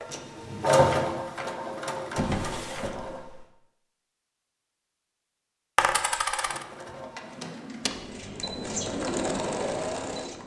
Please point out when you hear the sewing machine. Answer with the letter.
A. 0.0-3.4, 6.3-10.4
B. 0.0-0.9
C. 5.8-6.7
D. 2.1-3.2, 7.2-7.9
A.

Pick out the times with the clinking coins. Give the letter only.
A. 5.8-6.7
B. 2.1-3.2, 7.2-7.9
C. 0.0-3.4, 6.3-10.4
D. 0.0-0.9
A.